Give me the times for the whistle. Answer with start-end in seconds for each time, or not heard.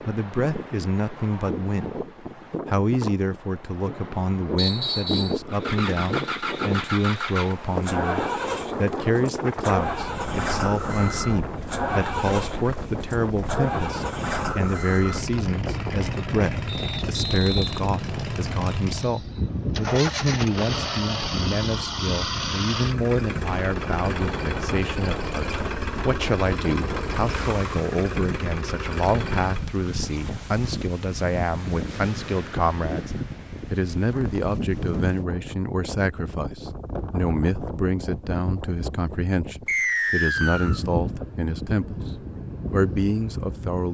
4.5-5.4, 16.6-18.7, 39.6-40.8.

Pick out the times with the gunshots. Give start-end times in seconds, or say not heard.
not heard.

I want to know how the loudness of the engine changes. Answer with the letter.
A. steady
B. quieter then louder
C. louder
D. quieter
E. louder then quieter
A.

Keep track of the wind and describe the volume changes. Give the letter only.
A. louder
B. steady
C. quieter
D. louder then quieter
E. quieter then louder
B.